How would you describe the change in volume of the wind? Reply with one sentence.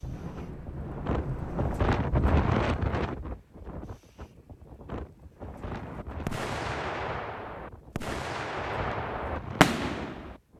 The loudness of the wind goes down.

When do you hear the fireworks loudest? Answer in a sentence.
The loudest moment of the fireworks is at 10 seconds.